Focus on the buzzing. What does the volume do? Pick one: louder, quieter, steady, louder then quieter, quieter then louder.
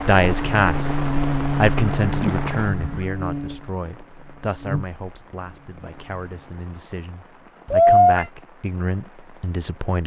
quieter.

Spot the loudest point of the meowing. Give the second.
8 s.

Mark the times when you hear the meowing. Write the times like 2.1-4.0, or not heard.
2.0-3.0, 7.7-8.2.